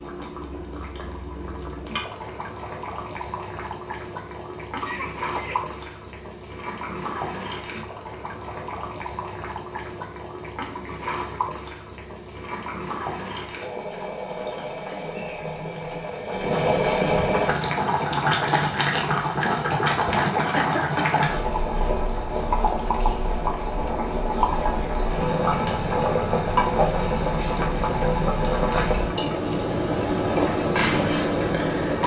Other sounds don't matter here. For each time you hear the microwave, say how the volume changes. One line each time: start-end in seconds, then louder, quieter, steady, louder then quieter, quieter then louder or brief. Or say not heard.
not heard.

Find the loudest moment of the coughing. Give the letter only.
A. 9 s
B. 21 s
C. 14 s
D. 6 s
B.